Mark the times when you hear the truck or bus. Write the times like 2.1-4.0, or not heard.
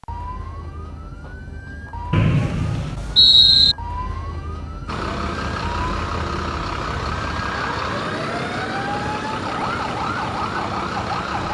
4.8-11.4.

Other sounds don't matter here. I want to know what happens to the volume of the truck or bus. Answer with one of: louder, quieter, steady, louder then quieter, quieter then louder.
steady.